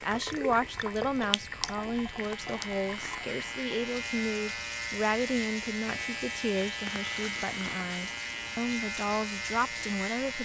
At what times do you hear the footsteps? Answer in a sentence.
The footsteps can't be heard in this clip.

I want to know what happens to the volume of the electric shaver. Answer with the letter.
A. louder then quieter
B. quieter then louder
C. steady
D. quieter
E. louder
E.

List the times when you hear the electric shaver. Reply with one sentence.
You can hear the electric shaver from 0.0 to 10.3 s.